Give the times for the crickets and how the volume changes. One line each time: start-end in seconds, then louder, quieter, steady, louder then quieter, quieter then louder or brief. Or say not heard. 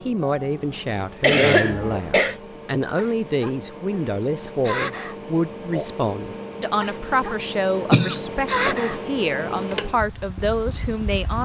0.0-11.3 louder.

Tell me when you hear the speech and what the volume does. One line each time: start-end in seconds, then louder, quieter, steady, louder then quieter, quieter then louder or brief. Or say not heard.
0.0-11.3 steady.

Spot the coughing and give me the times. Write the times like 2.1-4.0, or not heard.
1.2-2.4, 7.9-8.8.